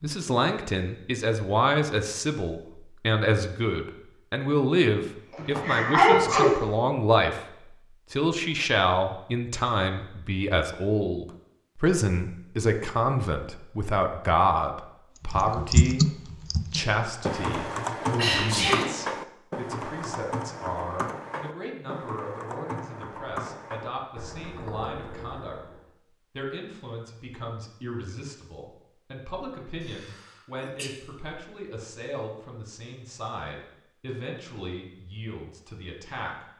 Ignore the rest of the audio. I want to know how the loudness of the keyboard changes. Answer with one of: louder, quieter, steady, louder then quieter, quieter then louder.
quieter.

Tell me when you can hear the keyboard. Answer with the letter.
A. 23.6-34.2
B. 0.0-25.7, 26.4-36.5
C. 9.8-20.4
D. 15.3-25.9
D.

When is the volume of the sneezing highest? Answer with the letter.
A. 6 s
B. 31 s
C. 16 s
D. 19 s
A.